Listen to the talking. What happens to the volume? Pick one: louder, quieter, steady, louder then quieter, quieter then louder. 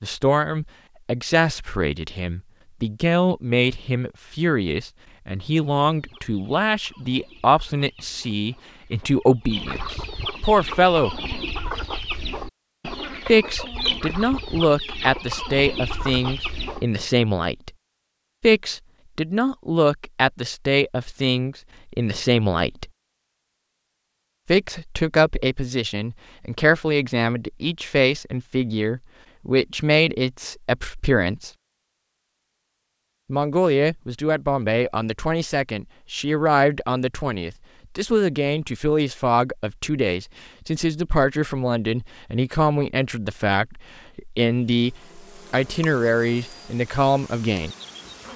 steady.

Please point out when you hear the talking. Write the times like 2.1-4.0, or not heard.
0.0-11.2, 13.2-17.7, 18.4-22.9, 24.4-31.5, 33.3-47.8.